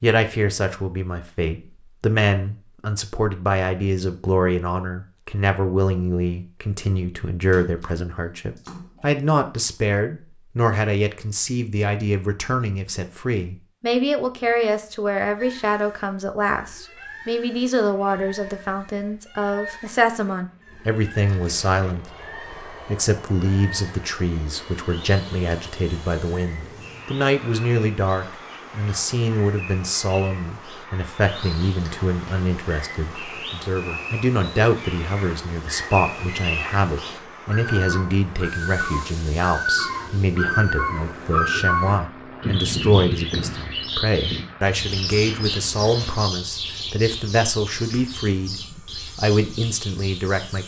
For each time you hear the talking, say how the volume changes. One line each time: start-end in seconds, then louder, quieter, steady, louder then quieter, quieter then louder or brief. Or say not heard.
0.0-50.6 steady.